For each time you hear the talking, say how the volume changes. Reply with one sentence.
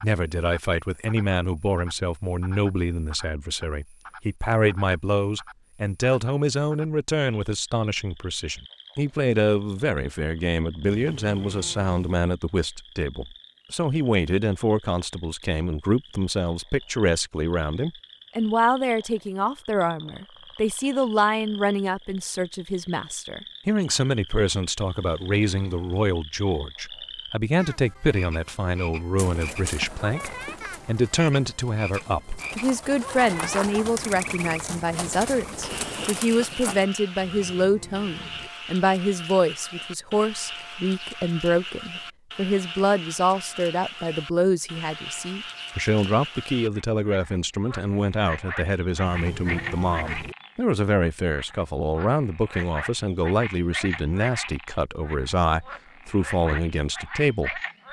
You can hear the talking from 0.0 to 57.6 s, at a steady volume.